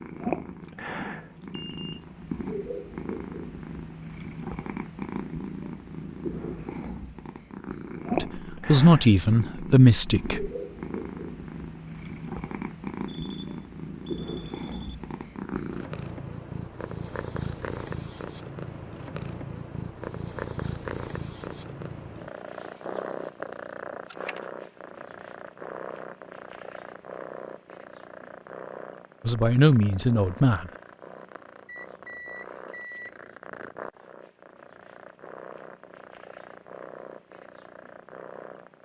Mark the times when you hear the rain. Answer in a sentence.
You can't hear the rain here.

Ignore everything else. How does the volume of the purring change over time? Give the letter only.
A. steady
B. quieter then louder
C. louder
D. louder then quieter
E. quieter
E.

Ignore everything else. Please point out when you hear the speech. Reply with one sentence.
The speech can be heard from 8.2 to 10.5 s and from 29.2 to 30.7 s.